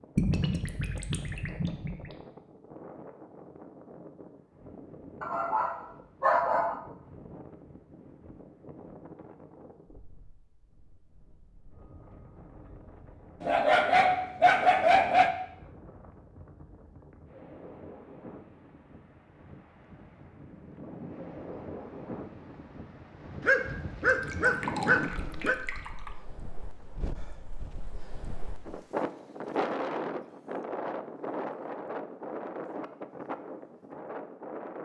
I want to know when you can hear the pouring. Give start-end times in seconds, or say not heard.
0.1-2.1, 24.1-26.1.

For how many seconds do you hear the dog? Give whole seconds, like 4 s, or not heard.
6 s.